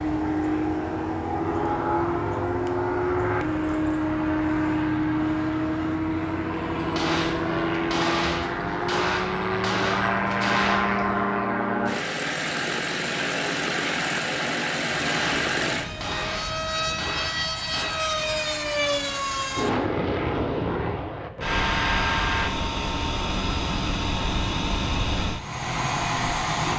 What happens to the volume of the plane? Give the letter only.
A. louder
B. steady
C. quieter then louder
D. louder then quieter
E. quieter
B.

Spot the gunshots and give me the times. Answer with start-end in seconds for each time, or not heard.
6.8-11.4, 14.9-18.1.